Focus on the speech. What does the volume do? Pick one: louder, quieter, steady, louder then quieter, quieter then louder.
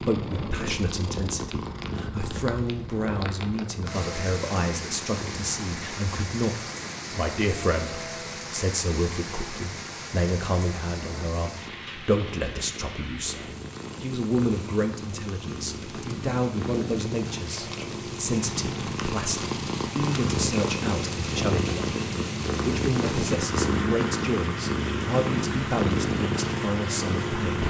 steady.